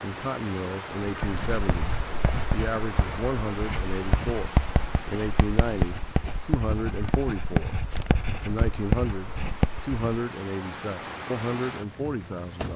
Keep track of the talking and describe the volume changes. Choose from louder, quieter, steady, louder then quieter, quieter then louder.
steady.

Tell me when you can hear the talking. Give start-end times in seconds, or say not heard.
0.0-7.8, 8.4-12.7.